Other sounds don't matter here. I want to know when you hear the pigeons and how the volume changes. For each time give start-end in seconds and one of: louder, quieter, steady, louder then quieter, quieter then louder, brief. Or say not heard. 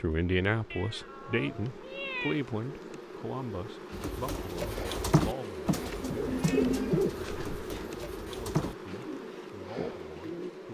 3.9-10.5 quieter.